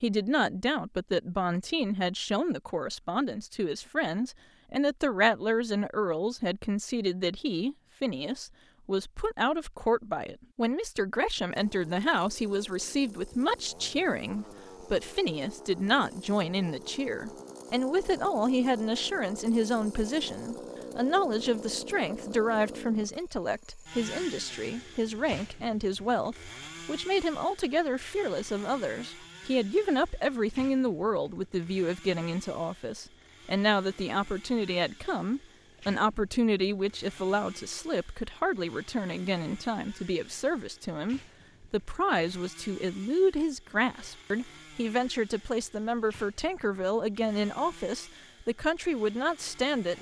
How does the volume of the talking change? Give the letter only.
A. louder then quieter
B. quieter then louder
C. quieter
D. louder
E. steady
E.